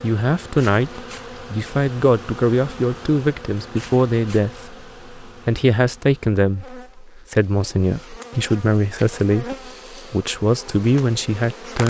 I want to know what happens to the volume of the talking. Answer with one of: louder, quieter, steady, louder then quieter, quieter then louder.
steady.